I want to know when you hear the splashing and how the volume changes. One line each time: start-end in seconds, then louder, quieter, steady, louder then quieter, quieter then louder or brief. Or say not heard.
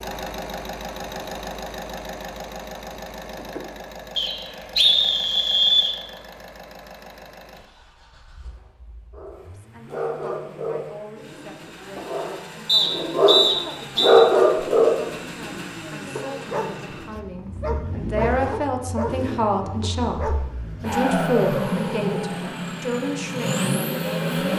not heard.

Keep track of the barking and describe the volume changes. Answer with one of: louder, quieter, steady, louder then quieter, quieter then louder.
louder then quieter.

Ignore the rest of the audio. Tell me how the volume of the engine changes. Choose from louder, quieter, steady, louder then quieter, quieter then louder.
quieter then louder.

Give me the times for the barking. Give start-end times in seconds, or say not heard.
9.1-20.9.